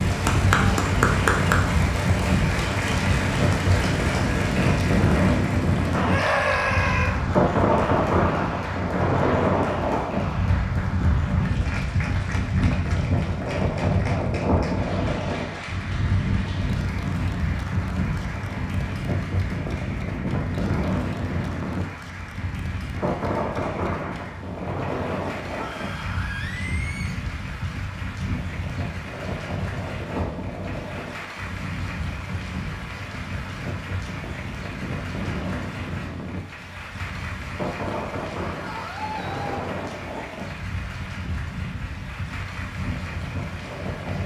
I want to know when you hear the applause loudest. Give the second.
1 s.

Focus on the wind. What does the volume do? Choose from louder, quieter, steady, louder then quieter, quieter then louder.
quieter.